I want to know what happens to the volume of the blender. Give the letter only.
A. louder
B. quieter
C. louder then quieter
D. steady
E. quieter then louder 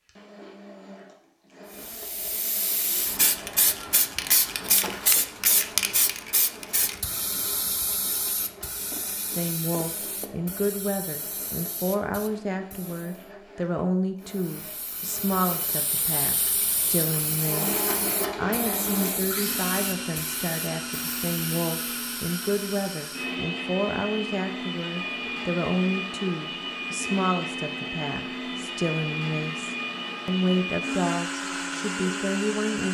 A.